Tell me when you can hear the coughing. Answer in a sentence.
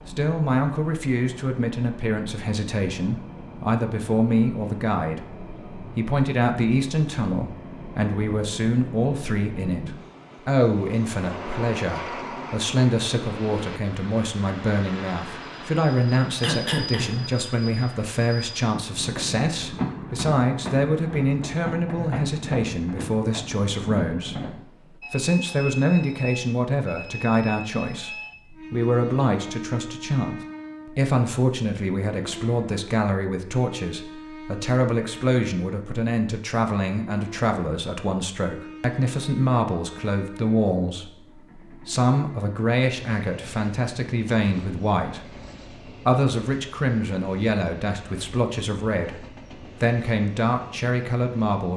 The coughing can be heard from 16.4 to 17.4 s.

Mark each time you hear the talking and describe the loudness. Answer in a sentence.
You can hear the talking from 0.1 to 51.7 s, at a steady volume.